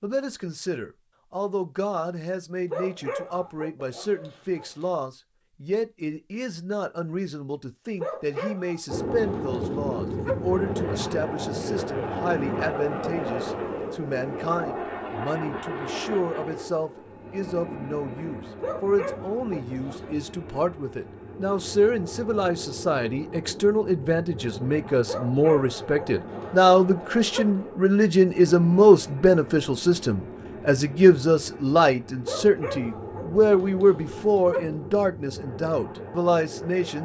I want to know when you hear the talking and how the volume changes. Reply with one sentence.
The talking can be heard from 0.0 to 37.0 s, getting louder.